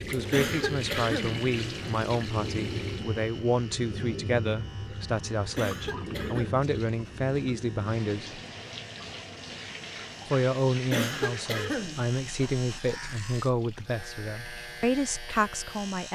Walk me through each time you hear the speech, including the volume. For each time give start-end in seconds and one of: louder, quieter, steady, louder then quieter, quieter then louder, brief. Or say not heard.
0.0-8.4 steady
10.2-16.1 quieter then louder.